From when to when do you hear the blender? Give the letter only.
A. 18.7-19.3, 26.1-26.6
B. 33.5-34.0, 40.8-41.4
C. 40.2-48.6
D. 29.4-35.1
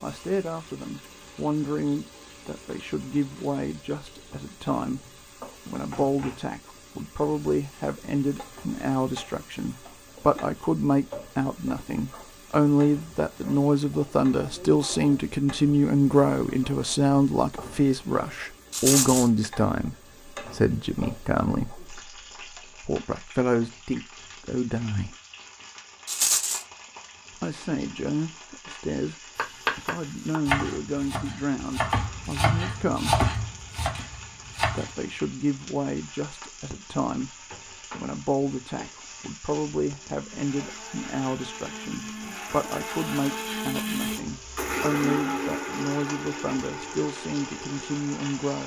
C.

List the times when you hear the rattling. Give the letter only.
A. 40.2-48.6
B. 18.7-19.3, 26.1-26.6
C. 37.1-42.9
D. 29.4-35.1
B.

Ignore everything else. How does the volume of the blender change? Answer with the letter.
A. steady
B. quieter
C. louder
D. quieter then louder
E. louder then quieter
E.